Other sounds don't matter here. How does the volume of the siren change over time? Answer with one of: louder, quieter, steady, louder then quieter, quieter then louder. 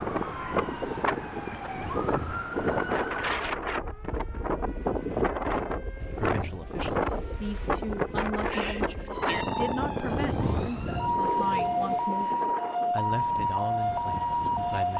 quieter then louder.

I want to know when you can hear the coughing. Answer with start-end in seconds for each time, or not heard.
not heard.